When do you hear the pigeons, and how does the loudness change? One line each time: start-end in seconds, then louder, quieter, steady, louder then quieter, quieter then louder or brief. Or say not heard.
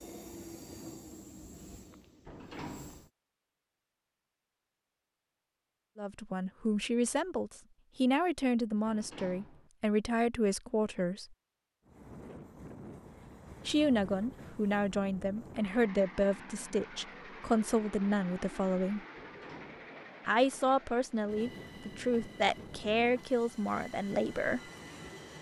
not heard.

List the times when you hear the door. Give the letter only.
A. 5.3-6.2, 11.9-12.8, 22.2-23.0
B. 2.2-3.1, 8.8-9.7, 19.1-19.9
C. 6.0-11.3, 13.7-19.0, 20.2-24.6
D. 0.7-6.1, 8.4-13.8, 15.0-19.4
B.